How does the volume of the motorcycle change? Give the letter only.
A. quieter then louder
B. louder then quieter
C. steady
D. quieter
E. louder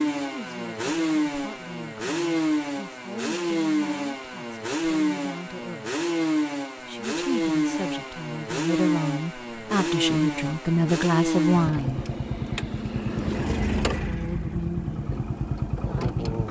C.